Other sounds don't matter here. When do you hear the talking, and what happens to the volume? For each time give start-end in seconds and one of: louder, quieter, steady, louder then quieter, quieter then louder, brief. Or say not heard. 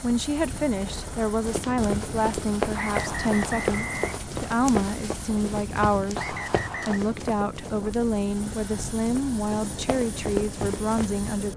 0.0-11.5 steady.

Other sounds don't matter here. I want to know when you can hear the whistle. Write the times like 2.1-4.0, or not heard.
2.8-4.2, 6.2-7.0.